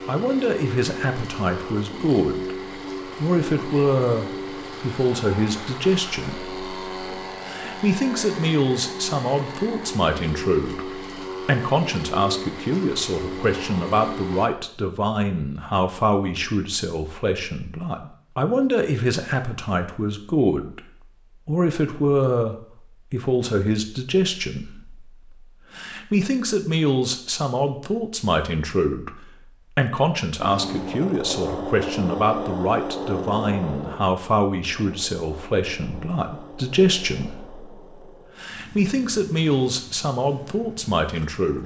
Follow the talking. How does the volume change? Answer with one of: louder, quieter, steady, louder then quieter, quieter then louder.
steady.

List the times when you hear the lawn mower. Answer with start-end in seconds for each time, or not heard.
0.0-14.5, 30.4-41.6.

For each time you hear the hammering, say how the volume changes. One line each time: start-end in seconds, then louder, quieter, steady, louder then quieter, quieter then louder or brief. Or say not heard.
not heard.